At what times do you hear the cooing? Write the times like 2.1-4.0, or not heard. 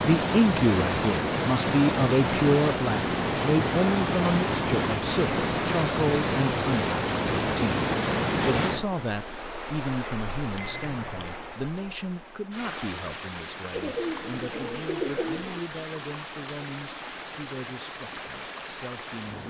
13.7-15.6.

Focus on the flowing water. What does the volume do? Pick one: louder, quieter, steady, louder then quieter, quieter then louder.
quieter.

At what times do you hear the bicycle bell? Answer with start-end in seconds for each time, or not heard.
10.6-11.4.